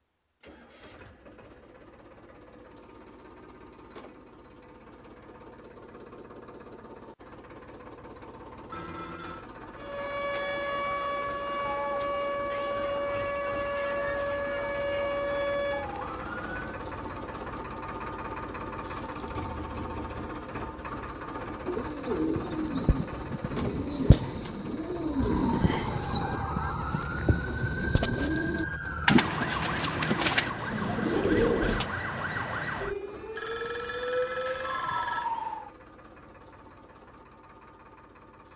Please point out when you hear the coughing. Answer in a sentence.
You can't hear the coughing here.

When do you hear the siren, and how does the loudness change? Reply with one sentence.
You can hear the siren from 9.8 to 16.8 s, at a steady volume; and from 25.1 to 35.7 s, at a steady volume.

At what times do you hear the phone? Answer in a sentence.
The phone can be heard from 8.7 to 9.4 s, from 13.2 to 13.9 s and from 33.4 to 35.3 s.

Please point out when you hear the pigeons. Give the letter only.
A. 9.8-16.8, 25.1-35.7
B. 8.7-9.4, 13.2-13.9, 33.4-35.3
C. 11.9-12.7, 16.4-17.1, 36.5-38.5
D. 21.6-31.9
D.